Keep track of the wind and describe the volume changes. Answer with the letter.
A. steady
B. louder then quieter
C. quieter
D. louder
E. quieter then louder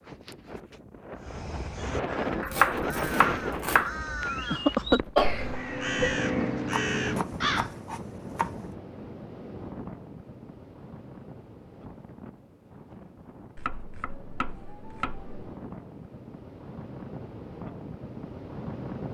E.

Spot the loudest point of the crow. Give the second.
5 s.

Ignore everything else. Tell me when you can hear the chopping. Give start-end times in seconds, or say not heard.
2.4-3.9, 6.7-8.6, 13.6-15.5.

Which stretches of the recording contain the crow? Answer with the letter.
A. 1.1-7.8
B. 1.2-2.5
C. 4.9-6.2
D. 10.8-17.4
A.